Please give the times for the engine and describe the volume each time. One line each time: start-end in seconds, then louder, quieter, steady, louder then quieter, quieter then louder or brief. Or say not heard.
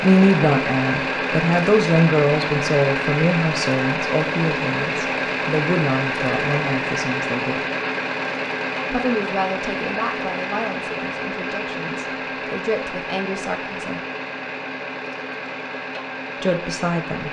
0.0-17.2 quieter.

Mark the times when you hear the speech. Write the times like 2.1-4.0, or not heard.
0.0-7.6, 8.9-14.0, 16.4-17.2.